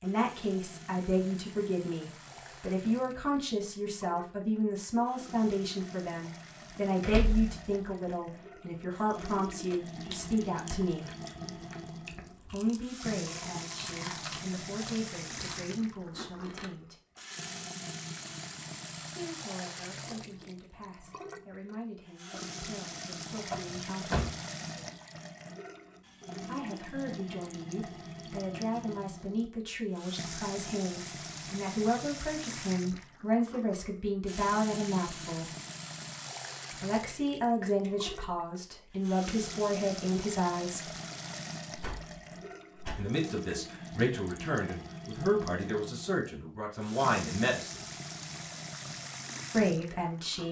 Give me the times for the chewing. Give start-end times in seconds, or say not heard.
9.7-16.7.